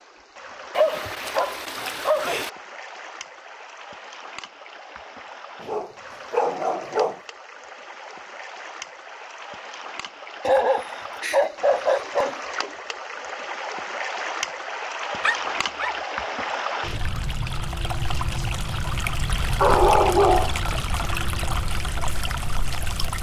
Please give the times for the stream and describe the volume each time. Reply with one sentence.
The stream can be heard from 0.0 to 23.1 s, getting louder.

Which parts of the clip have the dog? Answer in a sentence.
The dog can be heard from 0.8 to 2.5 s, from 5.6 to 7.2 s, from 10.4 to 12.3 s, from 15.2 to 15.9 s and from 19.6 to 20.6 s.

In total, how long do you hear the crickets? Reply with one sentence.
The crickets can't be heard in this clip.